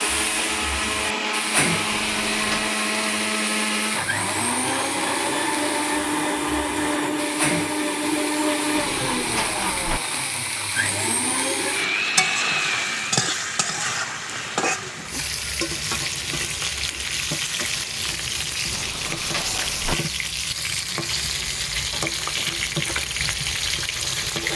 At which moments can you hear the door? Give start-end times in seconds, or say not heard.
1.9-2.8, 8.7-10.0, 18.7-19.9.